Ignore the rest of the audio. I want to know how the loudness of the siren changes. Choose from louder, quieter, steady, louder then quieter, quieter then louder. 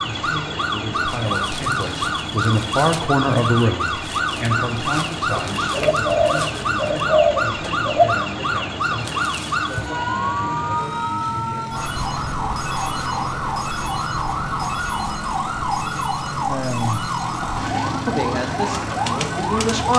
steady.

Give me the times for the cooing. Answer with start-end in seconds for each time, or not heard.
5.5-8.3.